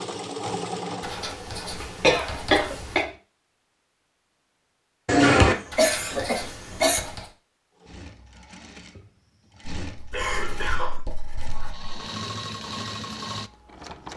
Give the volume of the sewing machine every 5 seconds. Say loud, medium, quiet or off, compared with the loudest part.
loud, medium, loud.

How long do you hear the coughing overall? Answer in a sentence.
The coughing can be heard for 4 seconds in total.